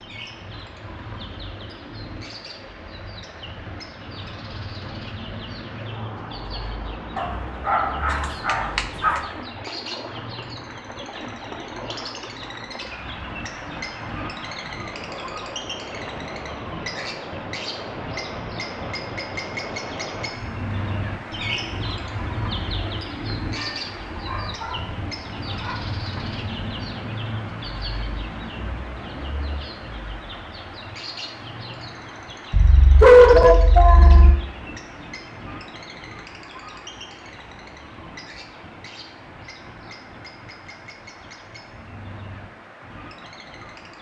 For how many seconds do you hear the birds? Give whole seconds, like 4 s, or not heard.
44 s.